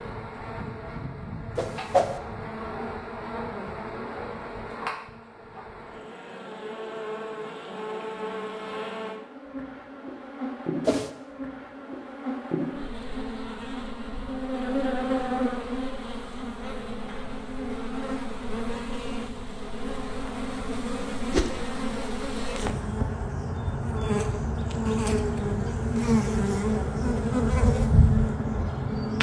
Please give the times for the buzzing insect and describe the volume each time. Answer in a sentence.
You can hear the buzzing insect from 0.0 to 29.1 s, getting louder.